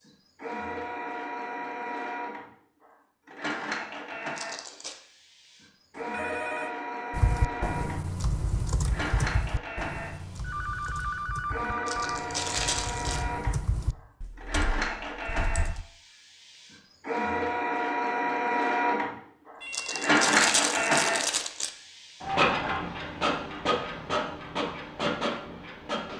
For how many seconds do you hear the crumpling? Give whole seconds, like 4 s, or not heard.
4 s.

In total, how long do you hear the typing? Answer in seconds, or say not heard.
9 s.